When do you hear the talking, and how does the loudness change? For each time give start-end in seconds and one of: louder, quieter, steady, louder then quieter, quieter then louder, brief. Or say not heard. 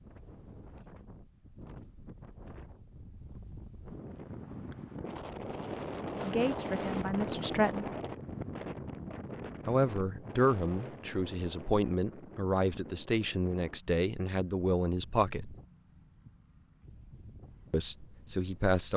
6.2-7.9 brief
9.7-15.6 steady
17.7-18.9 brief.